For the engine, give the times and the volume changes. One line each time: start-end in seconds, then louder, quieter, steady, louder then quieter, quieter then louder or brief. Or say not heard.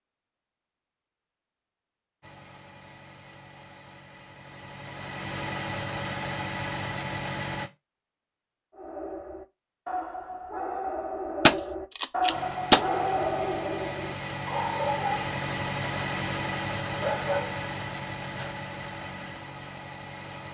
2.2-7.7 louder
12.3-20.4 louder then quieter.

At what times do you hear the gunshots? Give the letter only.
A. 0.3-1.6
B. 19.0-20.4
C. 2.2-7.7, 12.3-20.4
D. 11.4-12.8
D.